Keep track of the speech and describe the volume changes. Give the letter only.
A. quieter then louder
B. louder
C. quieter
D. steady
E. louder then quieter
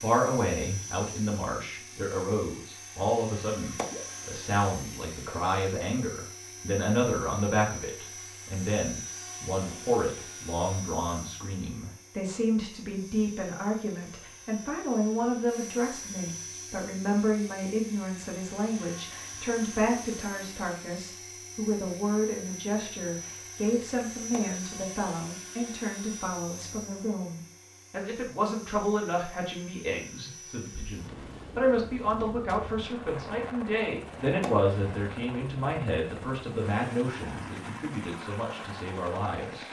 D.